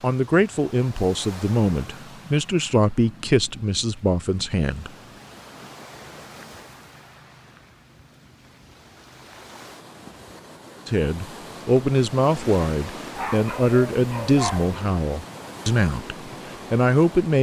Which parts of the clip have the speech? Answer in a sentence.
You can hear the speech from 0.0 to 4.9 s and from 10.8 to 17.3 s.